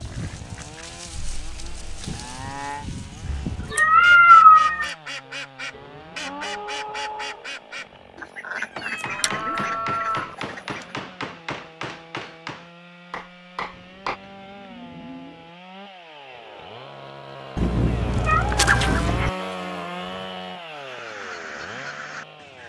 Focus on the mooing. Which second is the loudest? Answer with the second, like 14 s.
10 s.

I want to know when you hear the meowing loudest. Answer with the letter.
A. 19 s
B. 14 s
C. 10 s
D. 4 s
D.